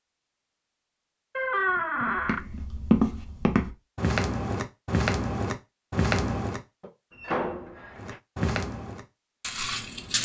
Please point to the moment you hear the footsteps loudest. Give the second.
3 s.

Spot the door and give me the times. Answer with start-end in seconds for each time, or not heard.
1.4-2.5, 7.1-8.2.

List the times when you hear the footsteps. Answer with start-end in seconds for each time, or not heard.
2.0-6.9, 8.0-10.2.